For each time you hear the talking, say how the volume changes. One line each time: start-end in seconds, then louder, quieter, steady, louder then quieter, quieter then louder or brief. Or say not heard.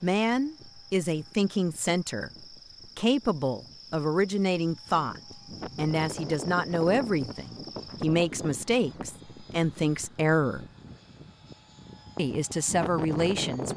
0.0-10.7 steady
12.2-13.7 brief.